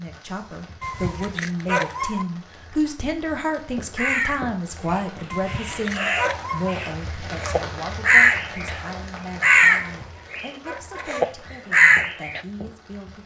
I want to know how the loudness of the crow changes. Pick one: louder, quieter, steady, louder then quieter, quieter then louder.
louder.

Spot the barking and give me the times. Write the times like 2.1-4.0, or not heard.
0.8-2.2, 5.3-6.8, 9.8-11.1.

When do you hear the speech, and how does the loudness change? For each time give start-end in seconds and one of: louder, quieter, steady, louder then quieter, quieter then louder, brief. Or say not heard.
0.0-13.2 quieter.